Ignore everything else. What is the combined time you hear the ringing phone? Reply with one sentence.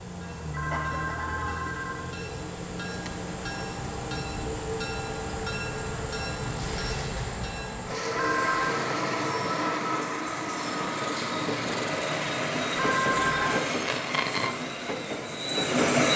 The ringing phone can be heard for 3 seconds in total.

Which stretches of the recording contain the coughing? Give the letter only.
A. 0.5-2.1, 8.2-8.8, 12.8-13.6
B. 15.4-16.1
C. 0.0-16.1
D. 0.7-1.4
D.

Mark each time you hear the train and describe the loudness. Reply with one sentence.
The train can be heard from 0.0 to 16.1 s, getting louder.